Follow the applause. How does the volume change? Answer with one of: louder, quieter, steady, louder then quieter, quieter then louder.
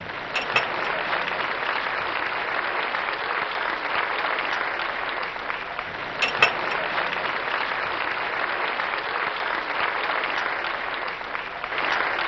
steady.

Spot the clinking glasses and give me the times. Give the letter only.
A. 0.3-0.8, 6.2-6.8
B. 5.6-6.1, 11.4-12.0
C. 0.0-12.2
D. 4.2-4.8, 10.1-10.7
A.